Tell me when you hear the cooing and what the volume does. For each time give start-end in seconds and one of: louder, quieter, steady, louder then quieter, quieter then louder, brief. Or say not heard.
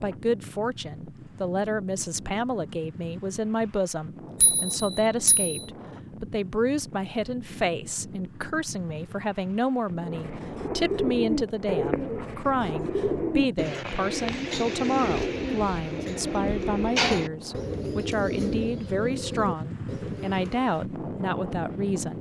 9.9-20.9 quieter.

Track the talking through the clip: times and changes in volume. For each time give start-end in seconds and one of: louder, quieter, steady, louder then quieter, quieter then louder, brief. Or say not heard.
0.0-22.1 steady.